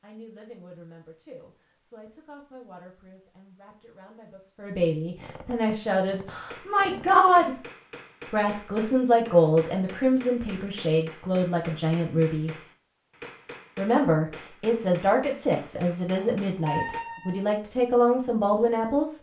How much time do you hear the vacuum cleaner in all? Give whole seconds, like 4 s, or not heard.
not heard.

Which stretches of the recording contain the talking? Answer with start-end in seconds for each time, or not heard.
0.0-7.5, 8.3-12.6, 13.8-19.1.